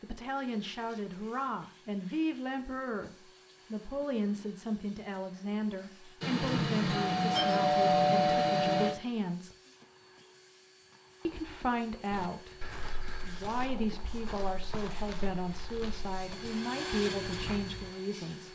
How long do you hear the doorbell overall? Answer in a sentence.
You can hear the doorbell for 3 seconds altogether.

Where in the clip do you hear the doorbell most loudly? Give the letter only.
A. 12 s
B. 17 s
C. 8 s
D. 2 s
C.